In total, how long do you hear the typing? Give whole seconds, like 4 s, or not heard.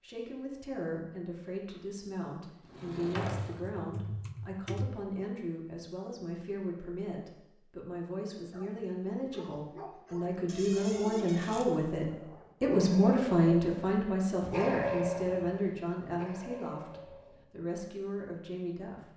2 s.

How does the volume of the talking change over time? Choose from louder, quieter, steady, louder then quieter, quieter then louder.
louder then quieter.